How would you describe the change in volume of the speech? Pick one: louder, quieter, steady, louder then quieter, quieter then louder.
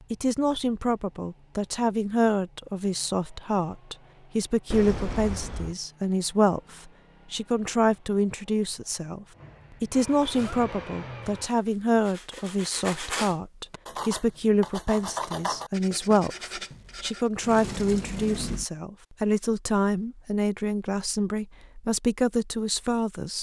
steady.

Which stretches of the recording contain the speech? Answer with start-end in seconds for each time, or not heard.
0.1-23.3.